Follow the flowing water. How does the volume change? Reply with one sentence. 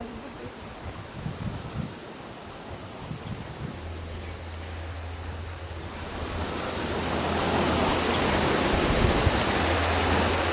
The loudness of the flowing water goes up.